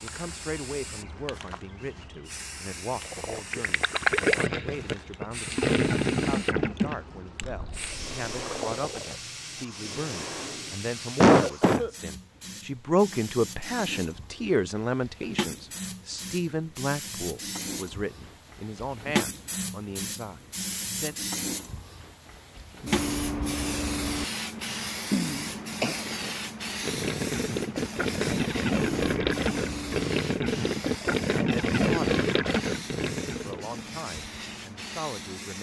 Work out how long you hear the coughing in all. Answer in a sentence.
The coughing can be heard for 2 seconds in total.